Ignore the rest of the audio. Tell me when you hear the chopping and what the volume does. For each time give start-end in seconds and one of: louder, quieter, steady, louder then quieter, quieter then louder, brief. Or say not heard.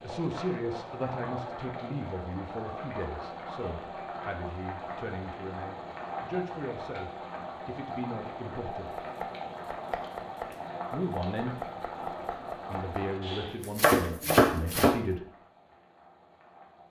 8.8-15.0 louder.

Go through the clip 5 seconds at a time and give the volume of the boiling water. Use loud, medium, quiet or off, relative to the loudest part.
loud, loud, loud, quiet.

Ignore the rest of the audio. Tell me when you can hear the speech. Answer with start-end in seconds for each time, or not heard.
0.0-9.1, 10.9-11.7, 12.7-15.2.